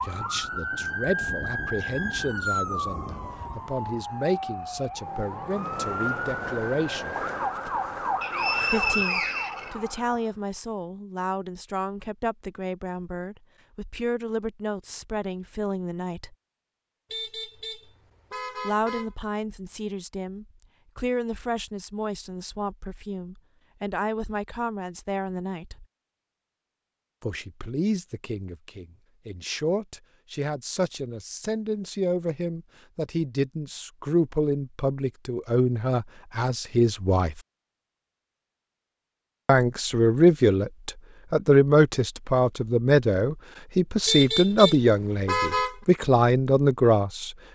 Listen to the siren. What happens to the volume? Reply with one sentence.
The loudness of the siren stays about the same.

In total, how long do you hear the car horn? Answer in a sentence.
The car horn can be heard for 4 seconds in total.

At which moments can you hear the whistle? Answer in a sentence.
You can hear the whistle from 8.2 to 9.8 s.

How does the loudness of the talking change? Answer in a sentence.
The volume of the talking goes up.